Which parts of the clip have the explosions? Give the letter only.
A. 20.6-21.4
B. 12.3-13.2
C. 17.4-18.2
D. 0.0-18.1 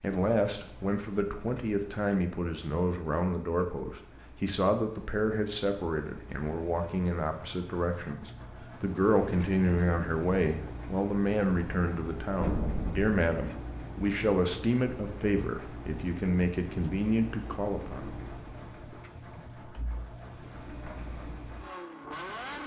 B.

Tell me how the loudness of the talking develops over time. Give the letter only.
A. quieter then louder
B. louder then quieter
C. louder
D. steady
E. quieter
D.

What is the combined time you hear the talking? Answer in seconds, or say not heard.
18 s.